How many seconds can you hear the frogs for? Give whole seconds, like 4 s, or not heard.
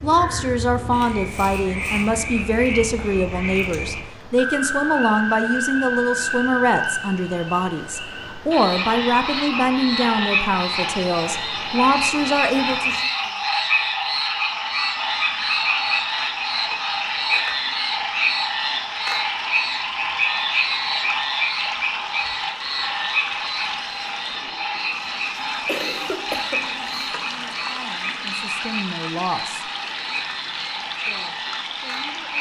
32 s.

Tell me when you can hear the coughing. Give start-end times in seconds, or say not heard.
25.6-27.1.